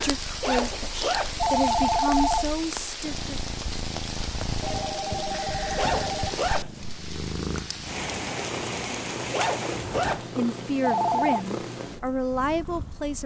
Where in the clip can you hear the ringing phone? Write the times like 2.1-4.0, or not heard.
1.4-2.5, 4.6-6.4, 10.8-11.4.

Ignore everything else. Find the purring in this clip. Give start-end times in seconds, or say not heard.
0.0-13.2.